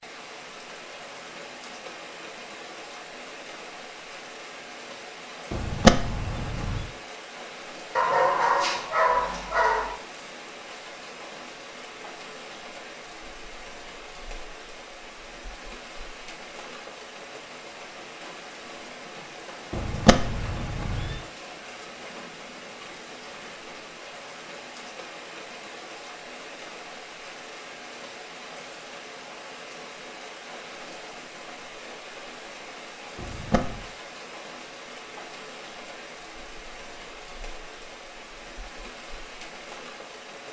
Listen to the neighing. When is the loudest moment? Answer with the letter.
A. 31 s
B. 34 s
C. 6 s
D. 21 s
C.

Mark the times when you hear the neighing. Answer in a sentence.
The neighing can be heard from 5.5 to 6.8 s, from 19.7 to 21.2 s and from 33.1 to 33.9 s.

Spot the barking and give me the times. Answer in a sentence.
You can hear the barking from 8.0 to 9.9 s.